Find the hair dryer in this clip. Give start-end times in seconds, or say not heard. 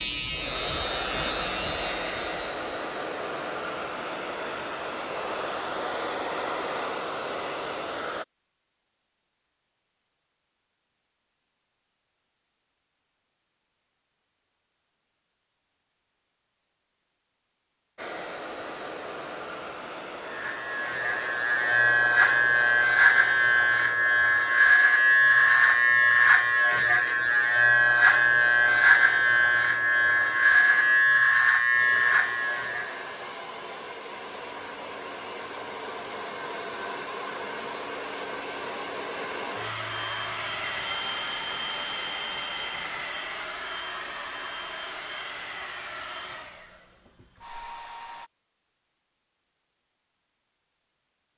0.2-8.2, 17.9-48.3.